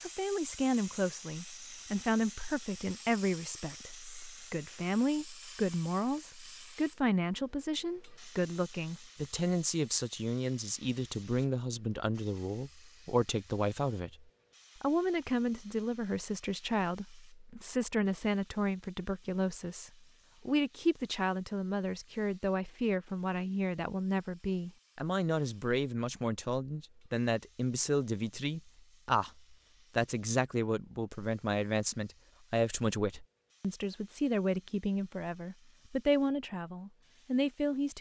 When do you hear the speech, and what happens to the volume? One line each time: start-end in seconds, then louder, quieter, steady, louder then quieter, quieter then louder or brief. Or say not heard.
0.0-37.9 steady.